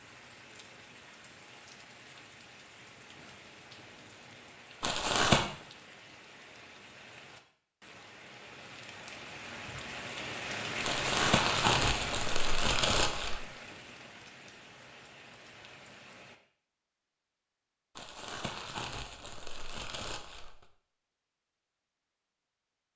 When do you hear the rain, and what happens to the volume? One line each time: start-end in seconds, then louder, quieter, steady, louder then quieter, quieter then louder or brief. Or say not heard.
0.0-16.4 louder then quieter.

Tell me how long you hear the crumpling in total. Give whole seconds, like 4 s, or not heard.
6 s.